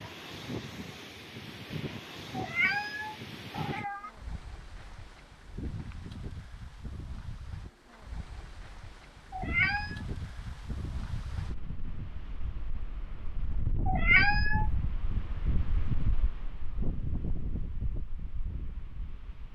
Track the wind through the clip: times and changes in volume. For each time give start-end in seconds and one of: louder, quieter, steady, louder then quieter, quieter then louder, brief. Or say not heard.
0.0-19.5 quieter then louder.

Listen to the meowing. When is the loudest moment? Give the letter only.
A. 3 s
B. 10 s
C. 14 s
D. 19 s
C.